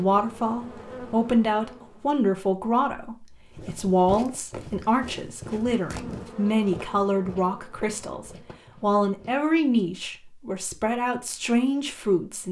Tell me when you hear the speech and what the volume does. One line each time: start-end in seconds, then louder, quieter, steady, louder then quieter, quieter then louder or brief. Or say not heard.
0.0-12.4 steady.